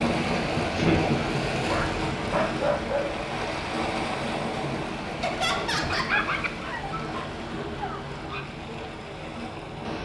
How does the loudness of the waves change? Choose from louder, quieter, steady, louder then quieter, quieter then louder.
quieter.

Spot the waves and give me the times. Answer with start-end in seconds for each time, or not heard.
0.0-9.9.